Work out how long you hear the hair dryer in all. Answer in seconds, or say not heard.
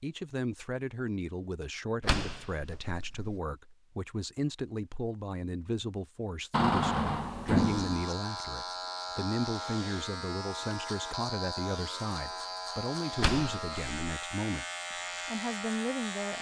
not heard.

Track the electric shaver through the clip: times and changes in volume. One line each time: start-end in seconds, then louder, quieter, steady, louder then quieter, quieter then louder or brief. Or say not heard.
7.5-16.3 steady.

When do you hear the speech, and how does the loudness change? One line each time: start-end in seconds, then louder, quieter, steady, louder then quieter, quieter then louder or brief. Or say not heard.
0.0-14.7 steady
15.2-16.3 brief.